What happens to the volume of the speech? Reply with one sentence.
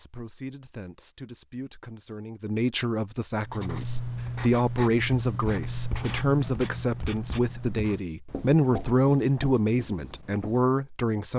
The volume of the speech goes up.